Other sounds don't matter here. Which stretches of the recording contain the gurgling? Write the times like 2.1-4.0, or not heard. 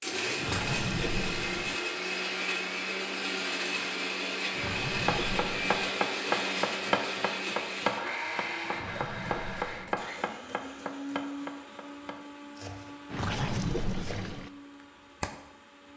0.3-1.8, 4.5-5.9, 8.7-10.1, 13.1-14.5.